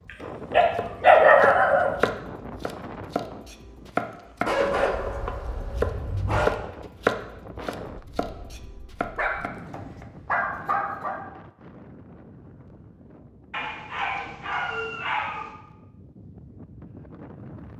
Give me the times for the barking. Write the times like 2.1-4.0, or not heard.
0.5-1.9, 4.5-6.5, 9.2-11.2, 13.5-15.5.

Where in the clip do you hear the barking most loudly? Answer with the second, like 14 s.
1 s.